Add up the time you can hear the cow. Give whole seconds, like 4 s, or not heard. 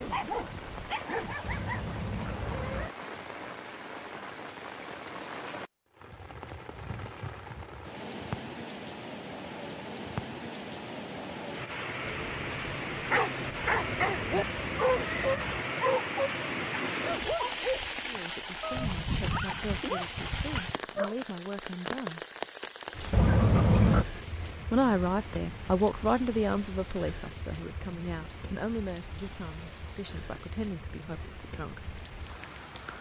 not heard.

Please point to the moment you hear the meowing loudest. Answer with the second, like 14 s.
24 s.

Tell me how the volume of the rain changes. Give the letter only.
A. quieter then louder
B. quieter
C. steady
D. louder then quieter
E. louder
D.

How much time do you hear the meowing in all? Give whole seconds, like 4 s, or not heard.
4 s.